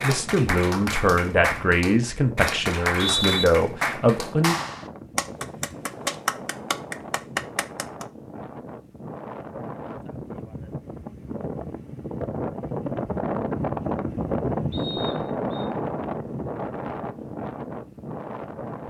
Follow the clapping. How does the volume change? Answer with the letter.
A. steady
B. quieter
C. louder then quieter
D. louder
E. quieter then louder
A.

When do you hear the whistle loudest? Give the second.
3 s.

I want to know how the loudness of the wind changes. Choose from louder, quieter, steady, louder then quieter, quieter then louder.
louder.